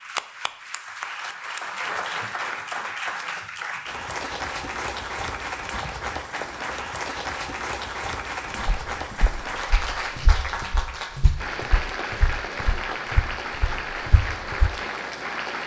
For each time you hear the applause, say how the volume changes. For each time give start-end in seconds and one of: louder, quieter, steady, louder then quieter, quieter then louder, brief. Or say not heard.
0.0-15.6 steady.